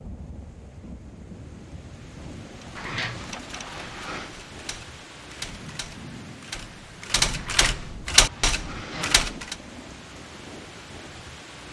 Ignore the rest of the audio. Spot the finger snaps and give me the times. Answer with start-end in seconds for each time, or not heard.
not heard.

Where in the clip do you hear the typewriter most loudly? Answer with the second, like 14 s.
8 s.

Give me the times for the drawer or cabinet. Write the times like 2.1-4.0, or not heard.
2.8-4.3, 7.3-9.3.